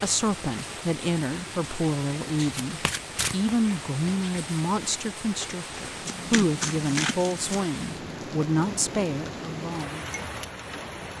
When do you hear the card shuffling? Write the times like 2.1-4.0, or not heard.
2.5-3.5, 6.0-7.7.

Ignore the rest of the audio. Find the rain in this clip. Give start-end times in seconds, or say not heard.
0.0-11.1.